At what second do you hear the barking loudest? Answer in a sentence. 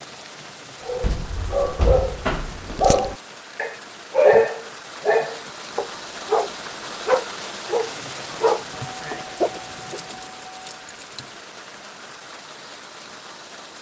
The volume of the barking peaks at 4 seconds.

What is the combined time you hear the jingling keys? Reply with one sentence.
The jingling keys can be heard for 3 seconds in total.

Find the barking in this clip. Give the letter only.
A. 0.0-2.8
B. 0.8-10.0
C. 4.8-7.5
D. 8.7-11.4
B.